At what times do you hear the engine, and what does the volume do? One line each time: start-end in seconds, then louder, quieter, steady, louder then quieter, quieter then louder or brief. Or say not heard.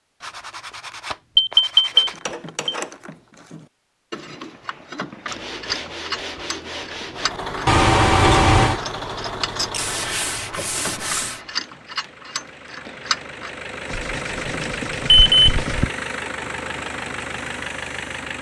7.1-18.3 quieter then louder.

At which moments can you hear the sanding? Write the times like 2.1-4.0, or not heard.
0.2-2.2, 5.2-7.3, 9.8-11.4, 13.8-15.8.